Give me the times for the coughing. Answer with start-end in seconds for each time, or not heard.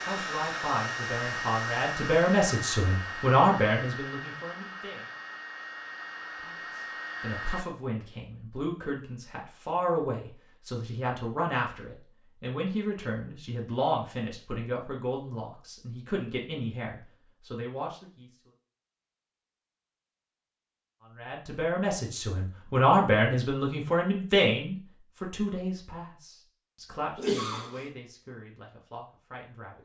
27.1-27.9.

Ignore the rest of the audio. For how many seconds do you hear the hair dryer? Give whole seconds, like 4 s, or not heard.
8 s.